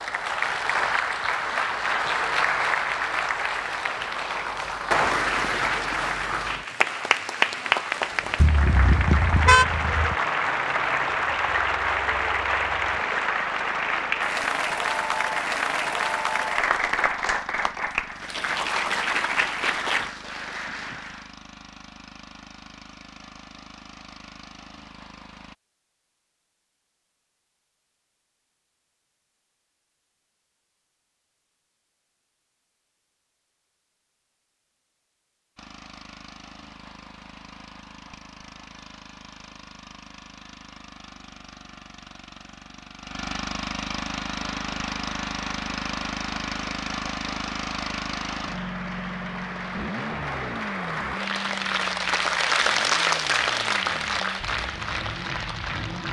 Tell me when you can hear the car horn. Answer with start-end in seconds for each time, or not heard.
8.4-10.2.